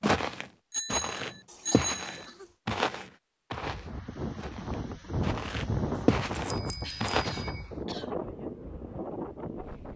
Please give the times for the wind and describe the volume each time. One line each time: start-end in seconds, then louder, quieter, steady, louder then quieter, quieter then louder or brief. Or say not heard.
3.6-9.9 louder then quieter.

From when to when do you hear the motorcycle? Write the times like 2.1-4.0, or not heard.
not heard.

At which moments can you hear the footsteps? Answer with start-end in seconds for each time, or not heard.
0.0-7.3.